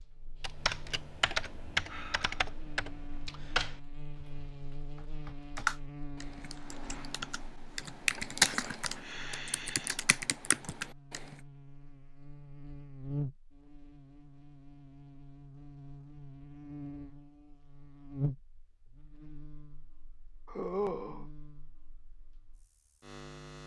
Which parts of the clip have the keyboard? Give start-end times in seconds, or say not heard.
0.4-11.2.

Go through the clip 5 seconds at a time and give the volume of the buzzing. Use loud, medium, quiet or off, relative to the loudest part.
medium, medium, loud, loud, medium.